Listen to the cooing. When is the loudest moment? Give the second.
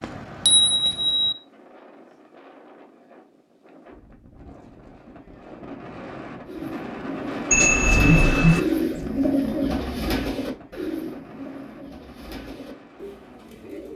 9 s.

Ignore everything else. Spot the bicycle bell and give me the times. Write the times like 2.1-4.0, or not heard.
0.0-1.4, 7.5-8.6.